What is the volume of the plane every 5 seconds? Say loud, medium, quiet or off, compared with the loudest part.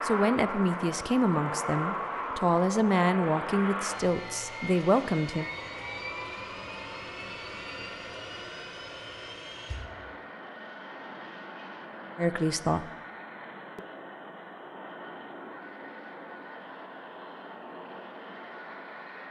loud, medium, medium, medium.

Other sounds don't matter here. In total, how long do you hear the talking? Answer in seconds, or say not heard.
6 s.